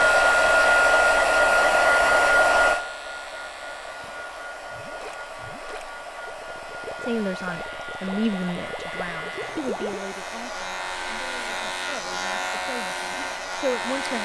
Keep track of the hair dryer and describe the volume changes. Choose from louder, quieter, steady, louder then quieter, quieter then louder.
quieter.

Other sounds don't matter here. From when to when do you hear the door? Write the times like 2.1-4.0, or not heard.
not heard.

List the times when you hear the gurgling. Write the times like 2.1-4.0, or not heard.
4.0-10.0.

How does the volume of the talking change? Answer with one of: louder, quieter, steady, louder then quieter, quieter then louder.
quieter then louder.